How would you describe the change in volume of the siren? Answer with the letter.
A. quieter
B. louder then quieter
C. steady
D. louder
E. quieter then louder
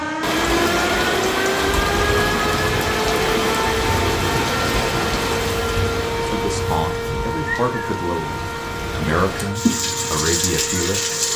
A.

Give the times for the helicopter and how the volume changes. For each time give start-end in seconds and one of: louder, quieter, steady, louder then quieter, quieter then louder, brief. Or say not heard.
not heard.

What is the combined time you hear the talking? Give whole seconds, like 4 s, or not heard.
5 s.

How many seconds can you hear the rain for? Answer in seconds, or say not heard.
11 s.